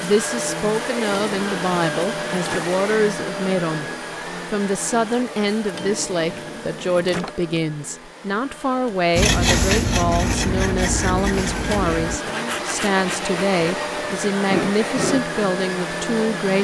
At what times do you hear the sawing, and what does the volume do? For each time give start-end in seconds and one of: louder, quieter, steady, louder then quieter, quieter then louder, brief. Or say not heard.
9.2-15.2 quieter then louder.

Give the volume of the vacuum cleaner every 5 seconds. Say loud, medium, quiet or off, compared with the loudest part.
loud, medium, loud, loud.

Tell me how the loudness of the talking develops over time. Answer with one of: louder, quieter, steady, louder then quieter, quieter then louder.
steady.